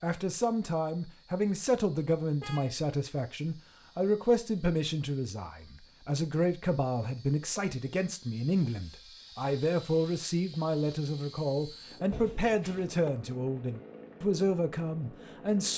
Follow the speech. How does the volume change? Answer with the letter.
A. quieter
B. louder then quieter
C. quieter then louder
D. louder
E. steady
E.